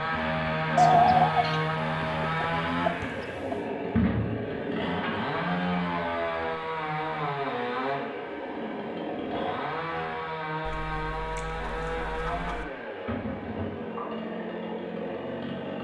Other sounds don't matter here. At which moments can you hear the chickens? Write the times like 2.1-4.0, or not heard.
0.8-3.6, 10.6-12.7.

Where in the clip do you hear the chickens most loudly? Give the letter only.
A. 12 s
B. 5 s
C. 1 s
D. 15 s
C.